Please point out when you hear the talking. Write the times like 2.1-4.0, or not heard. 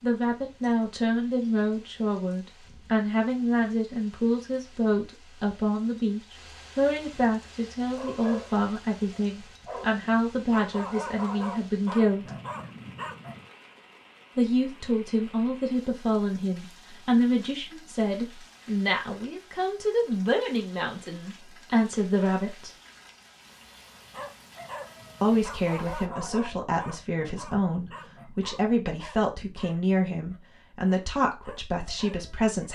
0.0-12.3, 14.3-22.7, 25.2-32.6.